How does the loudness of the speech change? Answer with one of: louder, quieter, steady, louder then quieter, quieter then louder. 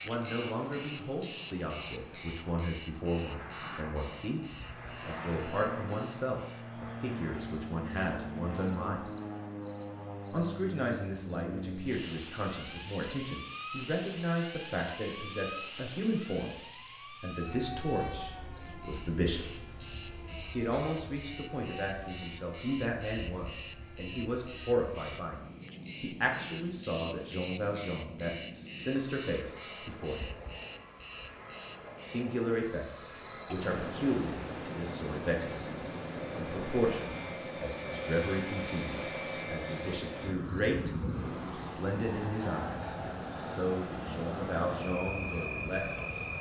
steady.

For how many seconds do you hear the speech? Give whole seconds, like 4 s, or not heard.
42 s.